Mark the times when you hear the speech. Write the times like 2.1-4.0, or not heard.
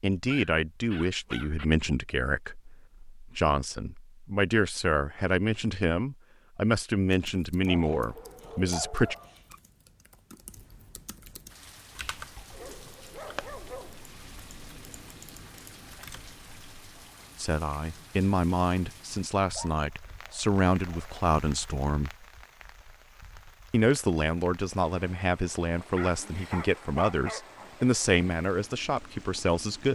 0.0-9.2, 17.4-22.1, 23.7-29.9.